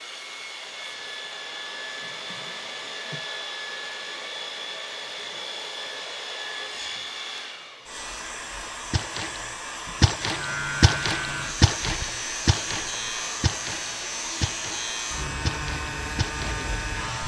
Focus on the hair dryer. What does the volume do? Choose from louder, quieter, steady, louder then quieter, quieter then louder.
steady.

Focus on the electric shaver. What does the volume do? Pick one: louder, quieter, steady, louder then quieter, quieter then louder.
steady.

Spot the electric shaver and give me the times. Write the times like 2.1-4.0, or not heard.
10.2-17.2.